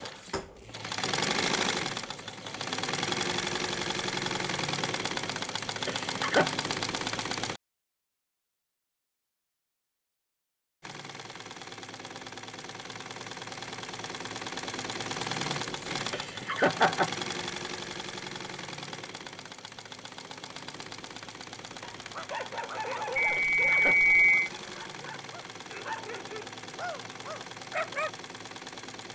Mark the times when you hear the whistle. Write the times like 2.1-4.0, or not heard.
23.1-24.5.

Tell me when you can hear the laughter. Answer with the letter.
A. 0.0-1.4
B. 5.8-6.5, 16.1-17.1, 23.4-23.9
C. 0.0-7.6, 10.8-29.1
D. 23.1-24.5
B.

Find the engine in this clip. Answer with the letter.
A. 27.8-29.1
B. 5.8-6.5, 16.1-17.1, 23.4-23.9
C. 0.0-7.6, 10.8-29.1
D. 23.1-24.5
C.